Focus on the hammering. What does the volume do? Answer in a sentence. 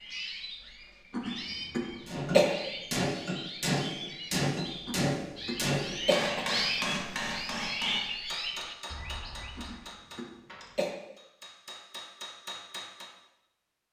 The volume of the hammering goes down.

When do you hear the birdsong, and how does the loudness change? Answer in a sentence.
The birdsong can be heard from 0.0 to 9.9 s, getting louder.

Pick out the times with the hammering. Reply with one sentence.
The hammering can be heard from 2.0 to 13.1 s.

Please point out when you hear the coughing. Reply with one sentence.
The coughing can be heard from 1.1 to 2.5 s, from 4.8 to 6.5 s and from 9.6 to 10.9 s.